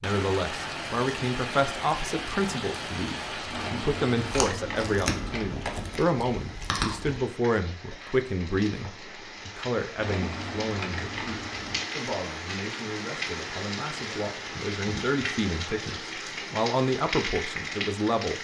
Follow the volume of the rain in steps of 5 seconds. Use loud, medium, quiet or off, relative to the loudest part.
loud, medium, loud, loud.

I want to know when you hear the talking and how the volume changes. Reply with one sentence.
The talking can be heard from 0.0 to 18.3 s, getting quieter then louder.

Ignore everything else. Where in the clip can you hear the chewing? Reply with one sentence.
The chewing can be heard from 4.3 to 7.2 s.